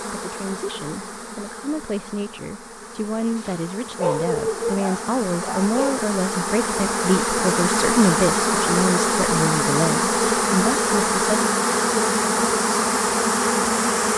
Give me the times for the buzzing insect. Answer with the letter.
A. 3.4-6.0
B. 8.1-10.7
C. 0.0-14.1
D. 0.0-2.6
C.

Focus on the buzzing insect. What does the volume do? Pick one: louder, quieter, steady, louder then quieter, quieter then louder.
louder.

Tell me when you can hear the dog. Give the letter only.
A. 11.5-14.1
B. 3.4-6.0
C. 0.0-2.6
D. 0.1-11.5
B.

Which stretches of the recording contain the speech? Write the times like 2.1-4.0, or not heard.
0.1-11.5.